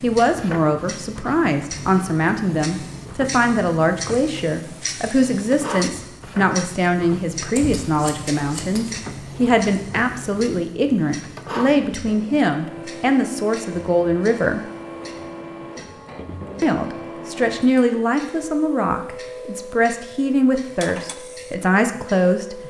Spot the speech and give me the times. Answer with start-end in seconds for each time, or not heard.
0.0-14.6, 16.6-22.6.